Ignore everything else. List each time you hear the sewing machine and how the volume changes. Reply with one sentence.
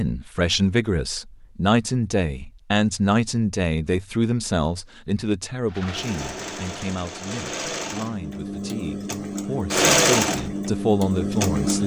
You can hear the sewing machine from 5.7 to 11.8 s, getting louder then quieter.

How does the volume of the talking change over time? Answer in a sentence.
The loudness of the talking goes down, then up.